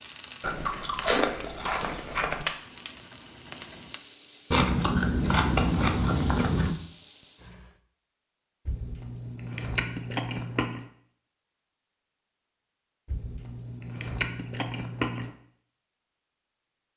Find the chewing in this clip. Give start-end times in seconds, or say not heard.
0.4-2.5, 4.5-6.8, 8.7-10.8, 13.1-15.3.